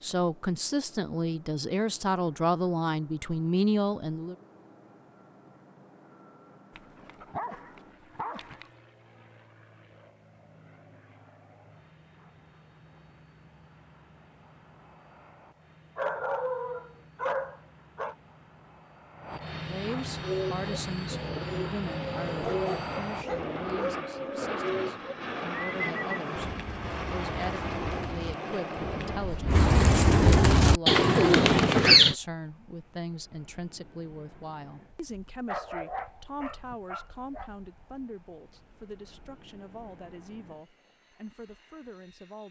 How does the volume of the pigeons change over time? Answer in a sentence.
The loudness of the pigeons goes down, then up.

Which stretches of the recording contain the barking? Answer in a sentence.
You can hear the barking from 6.7 to 8.7 s, from 15.9 to 18.1 s, from 22.4 to 24.0 s and from 35.5 to 37.5 s.